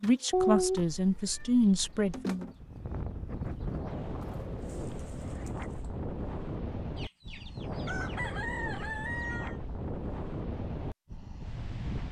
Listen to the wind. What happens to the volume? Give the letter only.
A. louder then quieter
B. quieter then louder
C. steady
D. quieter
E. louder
C.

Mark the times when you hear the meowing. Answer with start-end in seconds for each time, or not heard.
0.3-2.1.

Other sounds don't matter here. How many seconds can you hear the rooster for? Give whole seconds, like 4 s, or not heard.
3 s.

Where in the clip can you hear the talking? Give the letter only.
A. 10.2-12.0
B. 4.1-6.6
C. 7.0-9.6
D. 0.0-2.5
D.